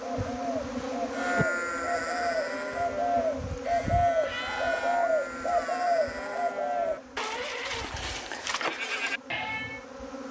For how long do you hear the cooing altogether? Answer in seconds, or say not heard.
7 s.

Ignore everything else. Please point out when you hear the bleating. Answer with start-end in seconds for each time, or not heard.
1.1-9.8.